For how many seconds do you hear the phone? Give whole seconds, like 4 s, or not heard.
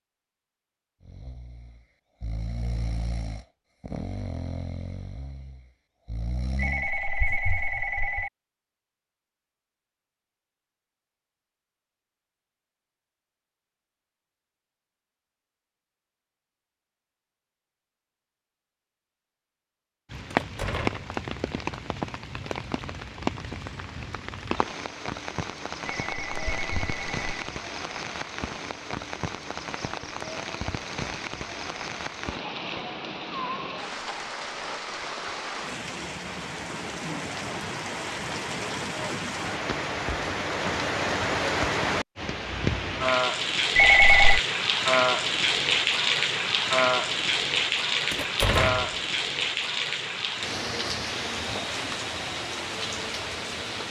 4 s.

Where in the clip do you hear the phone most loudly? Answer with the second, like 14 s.
44 s.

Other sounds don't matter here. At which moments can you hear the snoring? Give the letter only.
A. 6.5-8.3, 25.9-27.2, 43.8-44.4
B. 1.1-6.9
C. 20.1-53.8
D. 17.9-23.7
B.